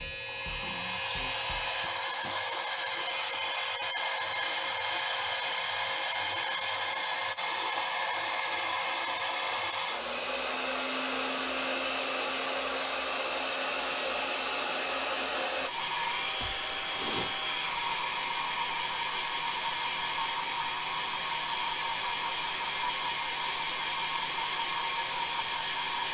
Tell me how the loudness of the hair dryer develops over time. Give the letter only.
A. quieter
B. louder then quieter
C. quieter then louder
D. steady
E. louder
D.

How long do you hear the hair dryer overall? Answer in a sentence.
You can hear the hair dryer for 26 seconds altogether.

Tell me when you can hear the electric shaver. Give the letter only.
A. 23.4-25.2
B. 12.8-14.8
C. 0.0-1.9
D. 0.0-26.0
C.